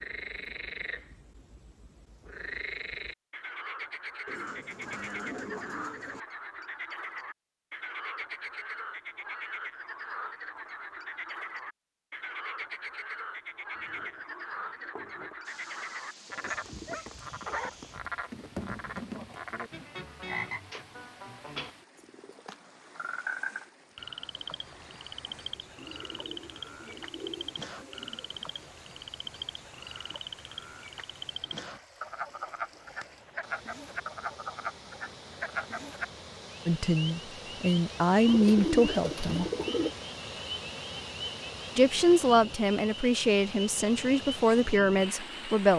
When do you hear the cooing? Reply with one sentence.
You can hear the cooing from 4.2 to 6.2 s, from 13.8 to 15.3 s, from 25.8 to 28.4 s and from 38.2 to 39.9 s.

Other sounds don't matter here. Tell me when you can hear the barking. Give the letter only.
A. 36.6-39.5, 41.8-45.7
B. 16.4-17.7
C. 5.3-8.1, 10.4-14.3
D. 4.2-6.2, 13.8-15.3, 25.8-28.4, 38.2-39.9
B.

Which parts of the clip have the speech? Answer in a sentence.
The speech can be heard from 36.6 to 39.5 s and from 41.8 to 45.7 s.